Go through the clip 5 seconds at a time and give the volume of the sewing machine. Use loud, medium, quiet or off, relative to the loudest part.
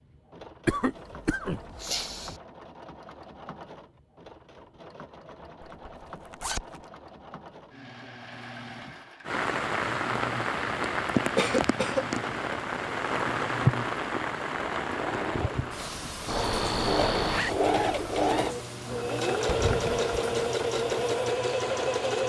quiet, quiet, quiet, loud, loud.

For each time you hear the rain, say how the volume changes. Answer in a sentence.
The rain can be heard from 9.2 to 22.2 s, getting quieter.